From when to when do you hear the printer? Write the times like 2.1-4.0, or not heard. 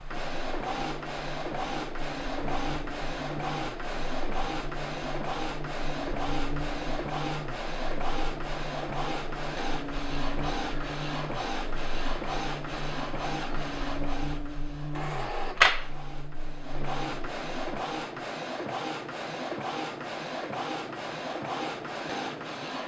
0.0-22.8.